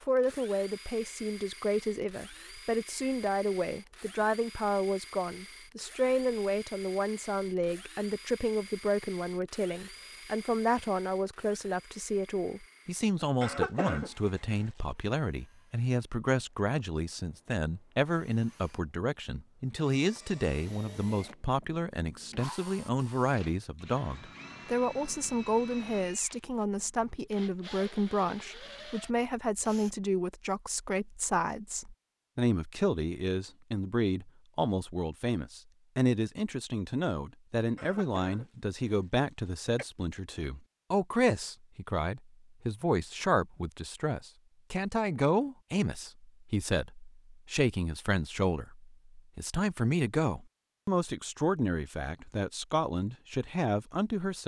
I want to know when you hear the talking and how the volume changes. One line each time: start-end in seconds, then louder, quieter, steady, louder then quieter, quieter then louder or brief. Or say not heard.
0.0-54.4 steady.